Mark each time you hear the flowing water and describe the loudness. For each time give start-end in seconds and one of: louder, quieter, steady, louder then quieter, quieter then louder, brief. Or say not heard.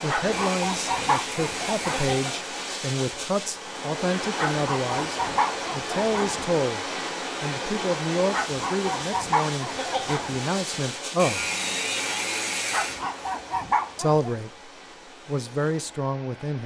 0.0-16.6 quieter.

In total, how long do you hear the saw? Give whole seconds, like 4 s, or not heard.
4 s.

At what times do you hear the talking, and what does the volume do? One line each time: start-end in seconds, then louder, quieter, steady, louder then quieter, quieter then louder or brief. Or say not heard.
0.0-11.4 steady
13.9-16.6 brief.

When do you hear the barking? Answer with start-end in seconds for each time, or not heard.
0.1-2.1, 4.3-6.5, 8.3-10.4, 12.7-14.3.